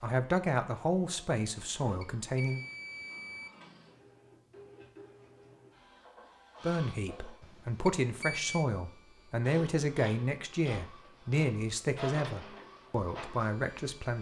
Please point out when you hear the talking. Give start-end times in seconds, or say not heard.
0.0-2.6, 6.6-14.1.